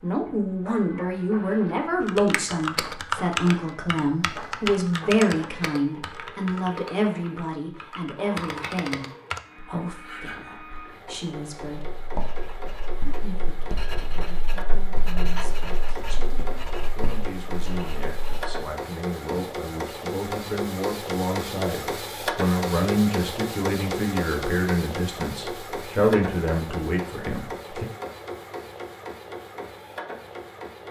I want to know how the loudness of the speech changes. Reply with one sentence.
The volume of the speech goes down, then up.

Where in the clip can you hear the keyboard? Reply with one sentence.
The keyboard can be heard from 2.0 to 9.4 s.